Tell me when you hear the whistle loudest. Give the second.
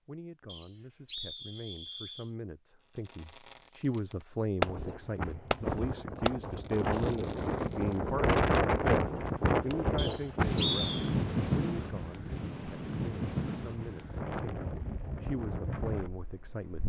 11 s.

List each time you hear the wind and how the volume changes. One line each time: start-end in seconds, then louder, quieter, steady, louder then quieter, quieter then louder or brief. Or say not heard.
4.6-16.8 louder then quieter.